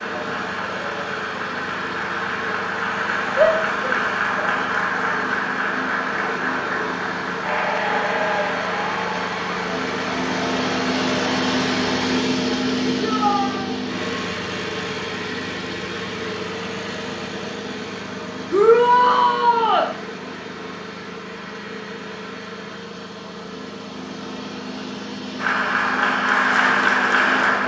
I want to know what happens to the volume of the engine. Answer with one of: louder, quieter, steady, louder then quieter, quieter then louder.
louder then quieter.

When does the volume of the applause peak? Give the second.
27 s.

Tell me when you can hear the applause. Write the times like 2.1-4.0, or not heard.
0.0-12.2, 25.4-27.6.